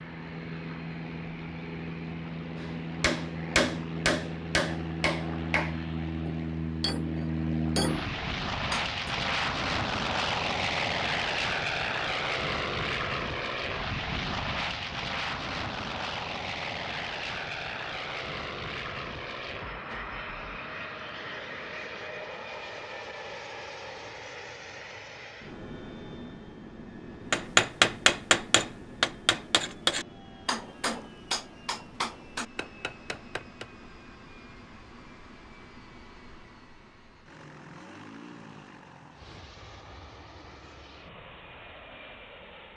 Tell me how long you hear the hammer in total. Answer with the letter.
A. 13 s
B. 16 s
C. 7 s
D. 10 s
A.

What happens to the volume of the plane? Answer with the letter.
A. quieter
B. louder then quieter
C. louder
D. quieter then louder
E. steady
A.